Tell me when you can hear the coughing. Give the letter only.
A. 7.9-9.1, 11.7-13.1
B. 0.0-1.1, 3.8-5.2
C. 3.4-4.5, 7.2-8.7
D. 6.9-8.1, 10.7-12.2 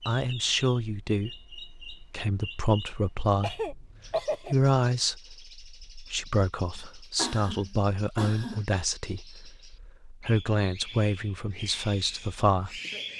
C.